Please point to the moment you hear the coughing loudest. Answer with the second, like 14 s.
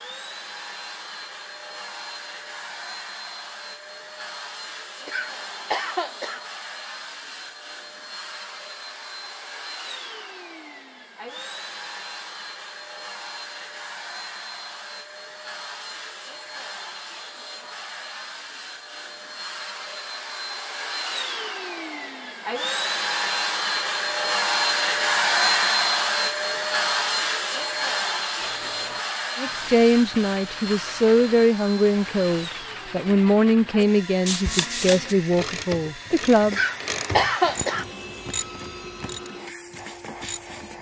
37 s.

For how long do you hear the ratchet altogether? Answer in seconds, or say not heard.
6 s.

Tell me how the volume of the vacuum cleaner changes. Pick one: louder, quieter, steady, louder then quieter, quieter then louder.
louder then quieter.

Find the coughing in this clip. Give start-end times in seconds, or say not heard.
5.0-6.4, 36.5-37.9.